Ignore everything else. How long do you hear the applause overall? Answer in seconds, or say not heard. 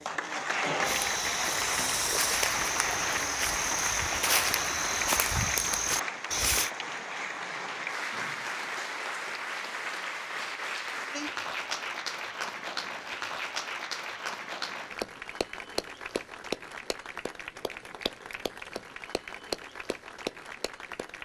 21 s.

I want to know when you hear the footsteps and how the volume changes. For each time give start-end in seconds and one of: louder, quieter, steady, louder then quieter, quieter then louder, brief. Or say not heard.
0.8-6.7 steady.